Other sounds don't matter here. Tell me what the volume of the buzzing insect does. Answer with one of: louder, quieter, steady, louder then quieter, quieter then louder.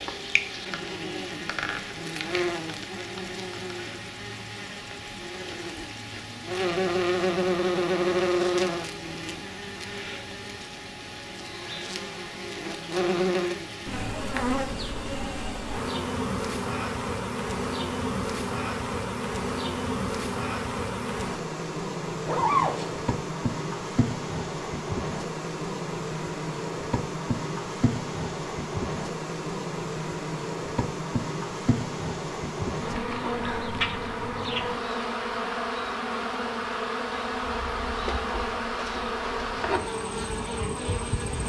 steady.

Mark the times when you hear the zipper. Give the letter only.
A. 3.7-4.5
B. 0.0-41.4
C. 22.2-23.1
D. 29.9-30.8
C.